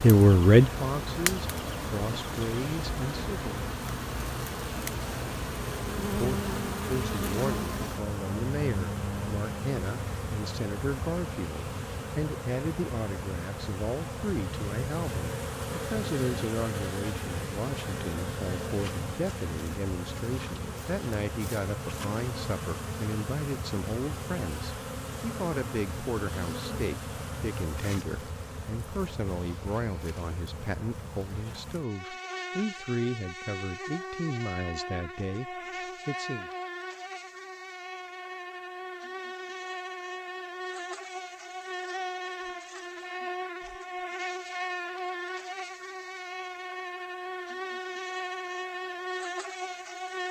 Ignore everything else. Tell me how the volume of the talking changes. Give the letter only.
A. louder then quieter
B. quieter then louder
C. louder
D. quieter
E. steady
D.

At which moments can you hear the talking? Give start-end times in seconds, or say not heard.
0.0-3.5, 6.0-36.5.